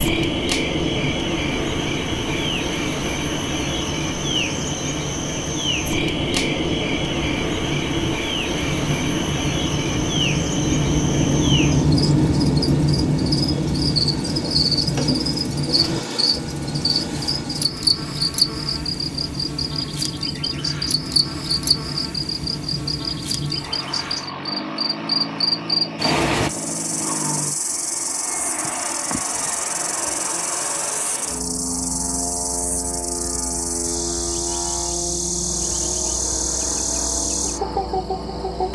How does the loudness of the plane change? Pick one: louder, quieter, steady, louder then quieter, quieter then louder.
louder then quieter.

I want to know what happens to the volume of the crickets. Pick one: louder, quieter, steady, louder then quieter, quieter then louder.
steady.